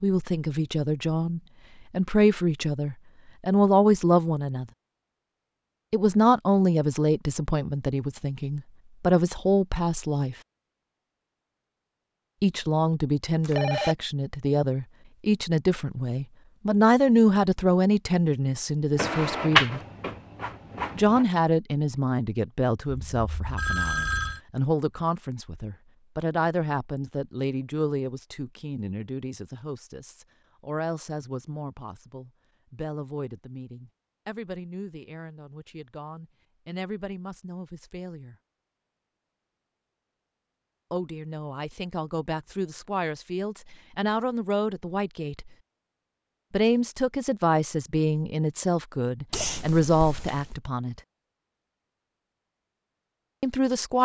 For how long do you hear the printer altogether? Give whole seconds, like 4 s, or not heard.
2 s.